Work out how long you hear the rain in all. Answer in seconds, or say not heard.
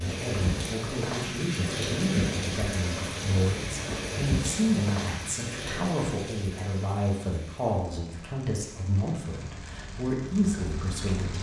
11 s.